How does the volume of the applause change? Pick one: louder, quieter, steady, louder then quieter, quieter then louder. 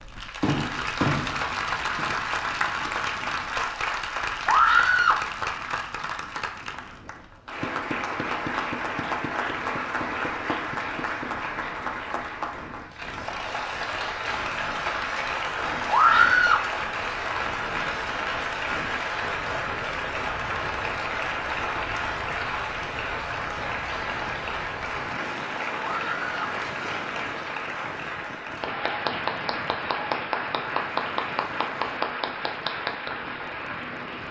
steady.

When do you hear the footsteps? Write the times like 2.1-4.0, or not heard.
not heard.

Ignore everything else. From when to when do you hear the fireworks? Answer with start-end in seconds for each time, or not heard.
0.0-2.2.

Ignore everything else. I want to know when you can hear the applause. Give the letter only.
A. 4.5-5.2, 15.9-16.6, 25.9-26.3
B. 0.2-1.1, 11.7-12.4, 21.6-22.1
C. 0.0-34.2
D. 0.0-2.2
C.